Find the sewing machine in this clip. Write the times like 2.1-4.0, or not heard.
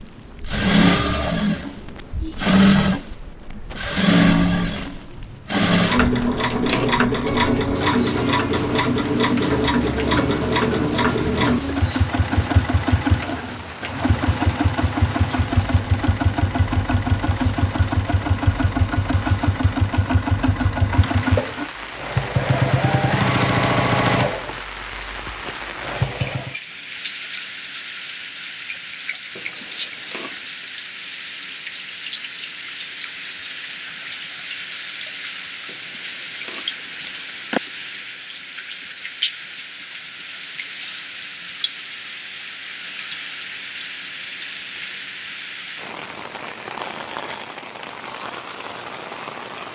0.1-26.6.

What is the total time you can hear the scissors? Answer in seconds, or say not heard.
4 s.